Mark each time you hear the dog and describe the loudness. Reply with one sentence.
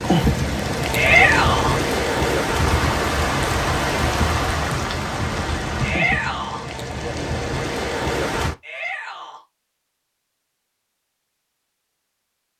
You can't hear the dog here.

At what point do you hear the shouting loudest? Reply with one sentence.
The loudest moment of the shouting is at 1 second.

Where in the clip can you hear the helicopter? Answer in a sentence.
You can't hear the helicopter here.